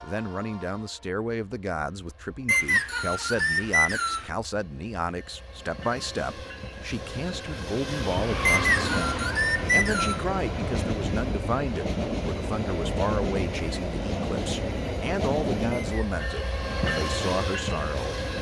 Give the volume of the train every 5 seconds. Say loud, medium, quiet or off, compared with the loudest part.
quiet, loud, loud, loud.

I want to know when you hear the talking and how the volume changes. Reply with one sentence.
You can hear the talking from 0.0 to 18.2 s, at a steady volume.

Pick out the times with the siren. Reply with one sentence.
The siren can't be heard in this clip.